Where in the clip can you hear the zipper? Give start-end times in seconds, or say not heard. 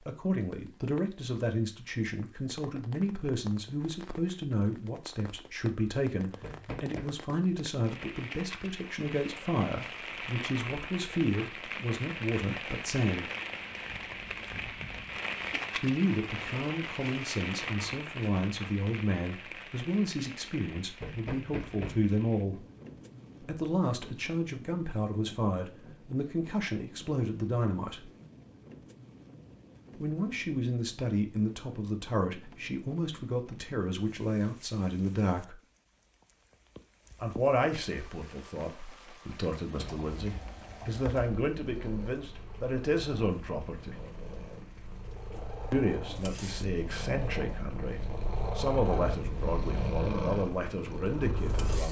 not heard.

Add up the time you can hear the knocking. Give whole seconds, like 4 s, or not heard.
3 s.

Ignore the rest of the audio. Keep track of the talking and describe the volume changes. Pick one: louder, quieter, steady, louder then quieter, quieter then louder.
steady.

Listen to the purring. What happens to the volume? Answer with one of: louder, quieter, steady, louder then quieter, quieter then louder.
louder.